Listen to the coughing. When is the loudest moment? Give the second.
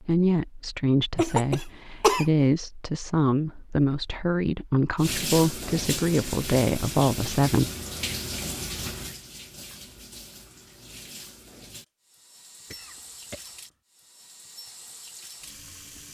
2 s.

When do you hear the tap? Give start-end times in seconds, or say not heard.
5.0-16.1.